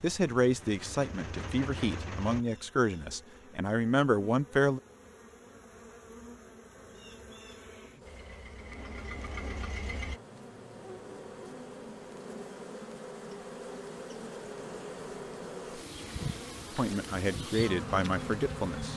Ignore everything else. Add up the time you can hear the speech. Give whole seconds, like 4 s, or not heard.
7 s.